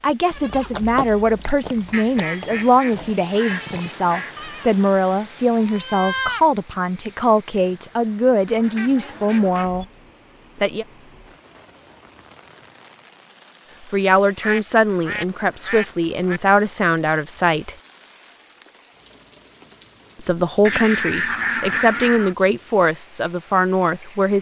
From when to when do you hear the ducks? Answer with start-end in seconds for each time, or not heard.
1.9-4.3, 8.4-9.8, 14.4-16.4, 20.6-22.4.